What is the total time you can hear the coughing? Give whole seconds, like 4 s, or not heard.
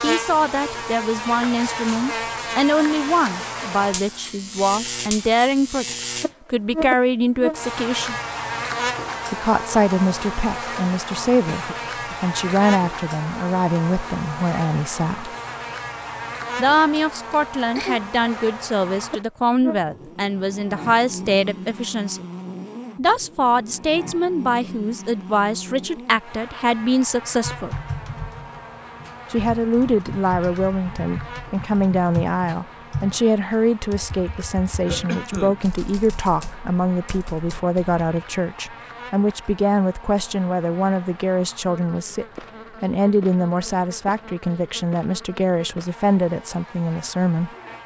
2 s.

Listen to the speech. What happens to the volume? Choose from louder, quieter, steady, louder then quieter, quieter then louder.
steady.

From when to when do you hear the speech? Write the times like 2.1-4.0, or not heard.
0.0-8.2, 9.3-15.3, 16.6-22.2, 22.9-27.8, 29.3-47.5.